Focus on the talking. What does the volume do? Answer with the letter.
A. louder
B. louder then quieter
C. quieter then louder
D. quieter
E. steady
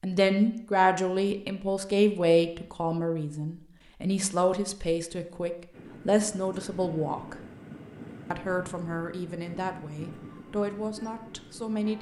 D.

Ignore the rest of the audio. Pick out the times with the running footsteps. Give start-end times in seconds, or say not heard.
not heard.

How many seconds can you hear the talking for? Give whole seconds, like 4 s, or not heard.
11 s.